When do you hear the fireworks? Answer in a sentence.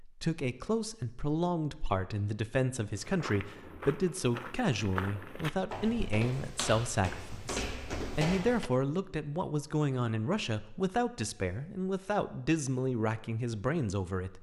The fireworks can't be heard in this clip.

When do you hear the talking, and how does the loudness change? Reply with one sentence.
You can hear the talking from 0.0 to 14.3 s, at a steady volume.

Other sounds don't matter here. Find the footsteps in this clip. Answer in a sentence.
The footsteps can be heard from 3.0 to 8.7 s.